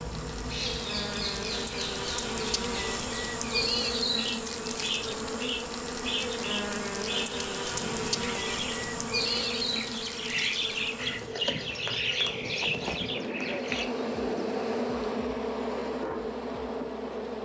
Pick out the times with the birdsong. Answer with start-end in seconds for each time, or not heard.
0.0-13.8.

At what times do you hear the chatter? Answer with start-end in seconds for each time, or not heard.
not heard.